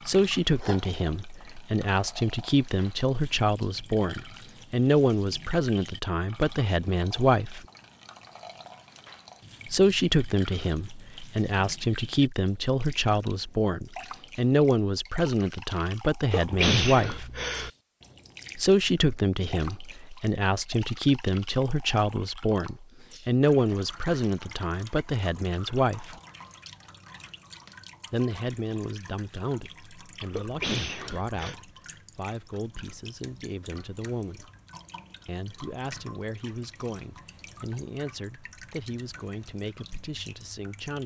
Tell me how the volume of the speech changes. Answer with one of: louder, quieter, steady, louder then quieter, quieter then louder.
quieter.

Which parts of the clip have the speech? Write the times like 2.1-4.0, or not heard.
0.1-7.7, 9.7-17.3, 18.6-26.2, 28.1-34.5, 35.2-41.0.